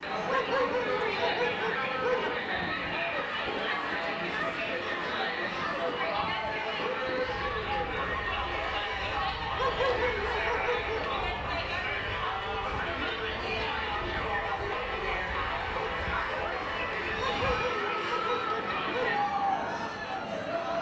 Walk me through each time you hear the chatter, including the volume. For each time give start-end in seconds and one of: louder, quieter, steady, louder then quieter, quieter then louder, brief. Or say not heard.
0.0-20.7 steady.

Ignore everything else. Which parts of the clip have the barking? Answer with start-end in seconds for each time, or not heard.
0.2-2.3, 9.6-11.2, 17.1-19.2.